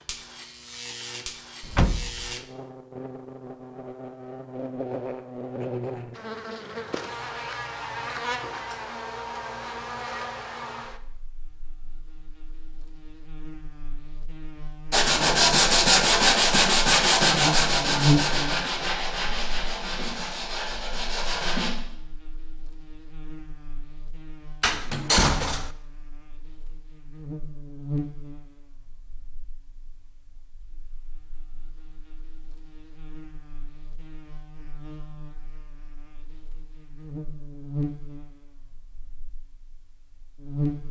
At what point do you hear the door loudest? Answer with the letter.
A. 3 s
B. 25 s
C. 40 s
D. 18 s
B.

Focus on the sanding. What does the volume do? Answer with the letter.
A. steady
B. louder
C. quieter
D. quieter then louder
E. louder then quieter
C.